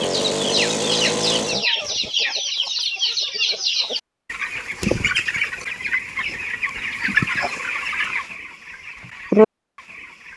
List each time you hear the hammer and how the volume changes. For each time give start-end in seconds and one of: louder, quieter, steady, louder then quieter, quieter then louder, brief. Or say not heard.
not heard.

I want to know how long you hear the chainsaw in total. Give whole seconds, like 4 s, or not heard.
2 s.